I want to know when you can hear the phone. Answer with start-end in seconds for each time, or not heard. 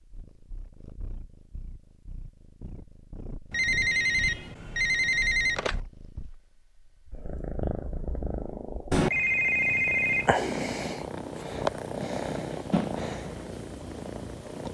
3.5-5.8, 8.9-10.3.